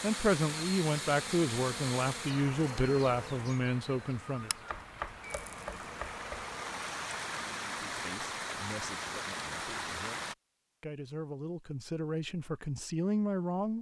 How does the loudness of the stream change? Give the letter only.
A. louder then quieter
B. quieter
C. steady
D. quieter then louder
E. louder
D.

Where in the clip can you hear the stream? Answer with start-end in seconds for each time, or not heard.
0.0-10.3.